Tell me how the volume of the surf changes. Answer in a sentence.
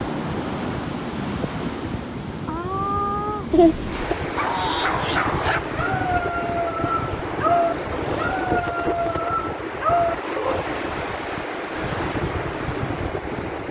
The loudness of the surf stays about the same.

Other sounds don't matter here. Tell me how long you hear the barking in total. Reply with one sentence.
You can hear the barking for 6 seconds altogether.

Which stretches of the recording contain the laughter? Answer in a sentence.
You can hear the laughter from 3.5 to 4.2 s.